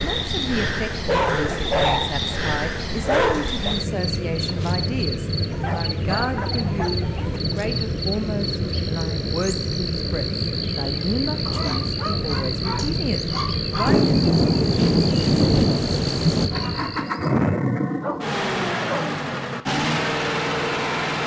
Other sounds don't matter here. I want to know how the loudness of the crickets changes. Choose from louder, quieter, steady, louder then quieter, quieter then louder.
steady.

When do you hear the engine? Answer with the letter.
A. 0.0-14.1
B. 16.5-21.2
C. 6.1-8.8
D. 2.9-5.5
B.